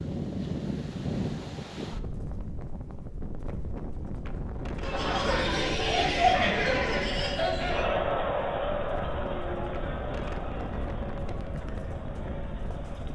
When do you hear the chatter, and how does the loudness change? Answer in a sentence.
You can hear the chatter from 4.8 to 13.1 s, getting quieter.